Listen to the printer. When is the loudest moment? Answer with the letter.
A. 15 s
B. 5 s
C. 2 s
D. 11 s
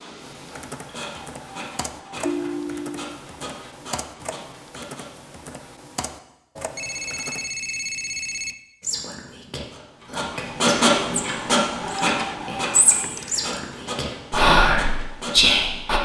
D.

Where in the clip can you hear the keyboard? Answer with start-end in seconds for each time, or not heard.
0.1-7.5.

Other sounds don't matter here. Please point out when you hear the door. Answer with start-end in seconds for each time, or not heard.
not heard.